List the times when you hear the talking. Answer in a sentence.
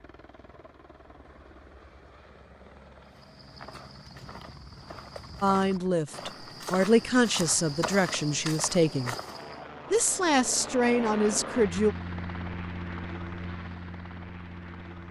You can hear the talking from 5.4 to 9.2 s and from 9.9 to 11.9 s.